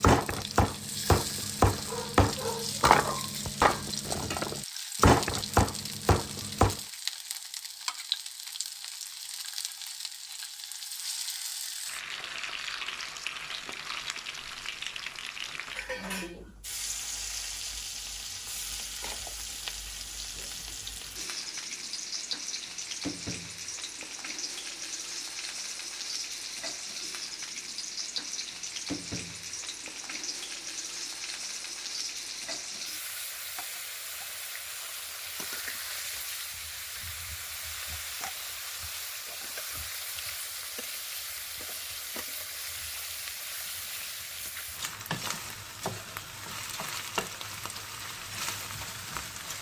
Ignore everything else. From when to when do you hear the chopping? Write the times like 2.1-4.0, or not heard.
0.0-6.8.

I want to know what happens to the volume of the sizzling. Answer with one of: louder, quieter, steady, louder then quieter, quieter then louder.
steady.